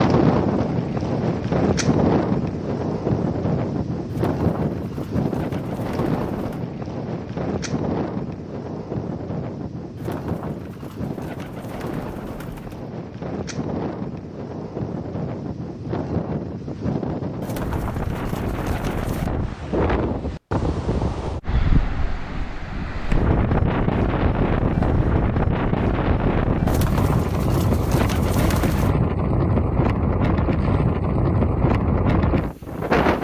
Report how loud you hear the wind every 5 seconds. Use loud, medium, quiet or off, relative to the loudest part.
loud, medium, medium, medium, loud, loud, loud.